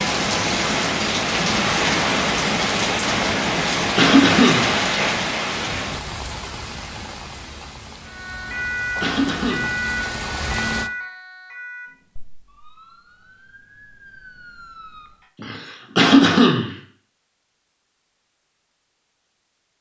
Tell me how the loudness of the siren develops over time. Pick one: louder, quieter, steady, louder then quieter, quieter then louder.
quieter then louder.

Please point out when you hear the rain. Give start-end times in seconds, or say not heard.
0.0-10.9.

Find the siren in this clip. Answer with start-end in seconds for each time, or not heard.
8.1-15.2.